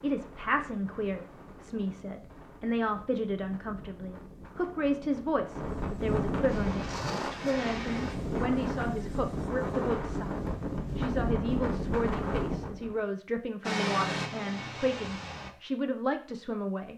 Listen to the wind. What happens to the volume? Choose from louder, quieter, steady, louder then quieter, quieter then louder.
louder.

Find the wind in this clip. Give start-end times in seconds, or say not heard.
0.0-13.1.